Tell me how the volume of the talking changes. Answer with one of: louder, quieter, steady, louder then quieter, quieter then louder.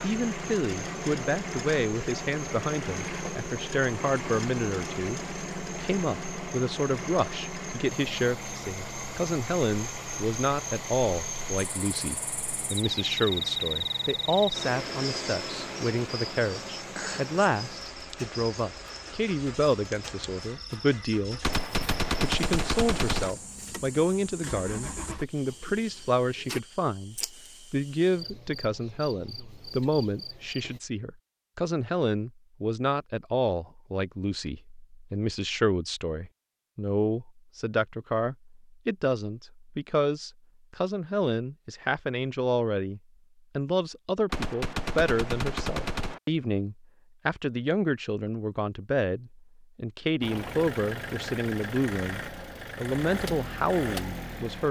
steady.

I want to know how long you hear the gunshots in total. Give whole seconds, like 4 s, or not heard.
4 s.